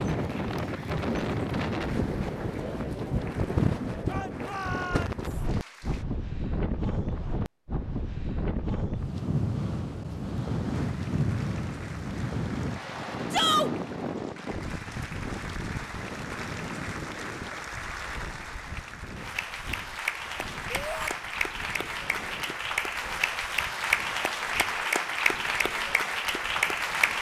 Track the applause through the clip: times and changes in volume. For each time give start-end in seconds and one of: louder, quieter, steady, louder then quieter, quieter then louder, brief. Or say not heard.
0.0-6.0 steady
10.7-27.1 louder.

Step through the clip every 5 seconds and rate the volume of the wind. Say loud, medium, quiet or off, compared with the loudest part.
loud, loud, loud, medium, quiet, quiet.